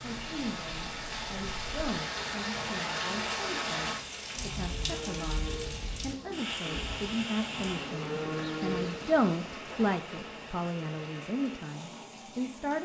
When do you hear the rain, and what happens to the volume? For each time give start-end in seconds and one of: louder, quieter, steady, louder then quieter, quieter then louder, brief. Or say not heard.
0.0-12.8 quieter.